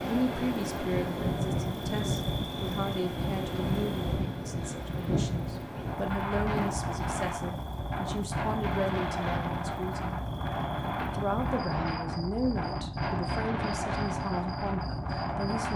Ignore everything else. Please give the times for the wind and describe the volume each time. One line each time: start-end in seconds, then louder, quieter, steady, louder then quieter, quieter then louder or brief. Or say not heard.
0.0-15.7 steady.